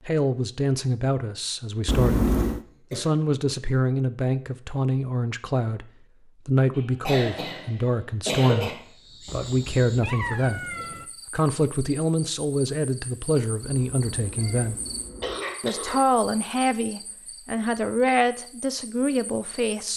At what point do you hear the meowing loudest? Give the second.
2 s.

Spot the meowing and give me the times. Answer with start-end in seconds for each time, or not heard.
1.9-2.6, 9.2-11.1, 13.6-15.4.